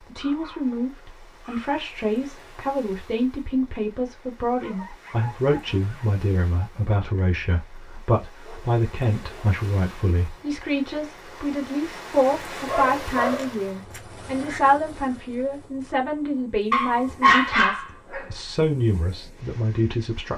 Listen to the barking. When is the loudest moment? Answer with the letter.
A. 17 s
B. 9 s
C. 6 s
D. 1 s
A.